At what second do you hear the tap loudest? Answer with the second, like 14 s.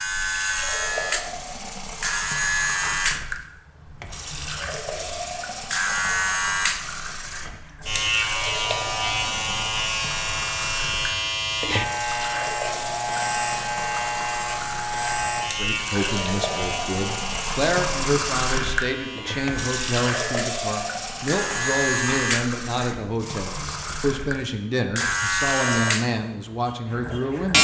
18 s.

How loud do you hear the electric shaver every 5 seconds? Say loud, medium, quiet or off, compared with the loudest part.
loud, loud, loud, medium, loud, loud.